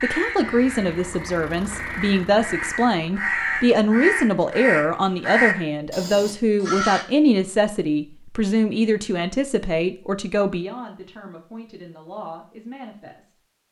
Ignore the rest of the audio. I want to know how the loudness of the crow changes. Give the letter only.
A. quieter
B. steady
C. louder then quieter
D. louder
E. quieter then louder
D.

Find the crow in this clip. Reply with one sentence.
You can hear the crow from 0.0 to 7.0 s.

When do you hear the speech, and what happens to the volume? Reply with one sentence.
The speech can be heard from 0.0 to 13.3 s, getting quieter.